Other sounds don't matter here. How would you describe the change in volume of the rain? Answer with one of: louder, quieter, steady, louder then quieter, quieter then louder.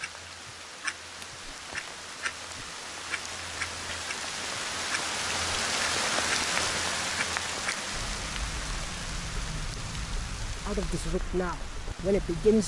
louder then quieter.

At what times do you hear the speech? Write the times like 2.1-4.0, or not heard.
10.7-12.6.